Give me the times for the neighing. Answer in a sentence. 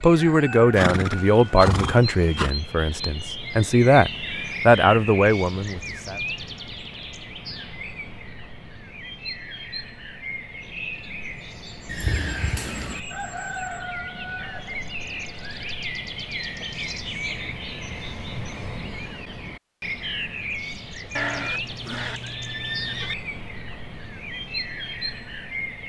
You can hear the neighing from 0.8 to 2.5 s, from 11.8 to 13.0 s and from 21.1 to 23.1 s.